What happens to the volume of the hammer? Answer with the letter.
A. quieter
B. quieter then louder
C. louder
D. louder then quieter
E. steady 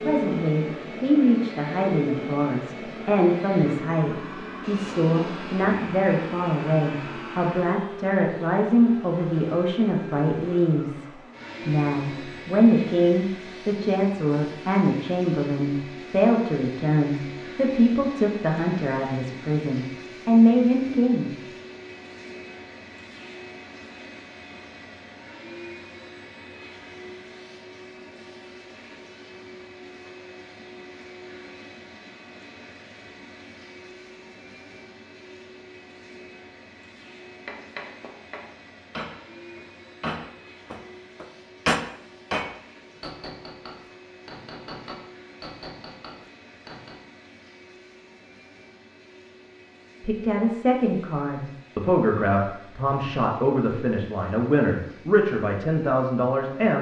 D.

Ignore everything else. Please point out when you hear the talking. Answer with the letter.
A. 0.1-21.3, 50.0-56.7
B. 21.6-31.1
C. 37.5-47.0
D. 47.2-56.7
A.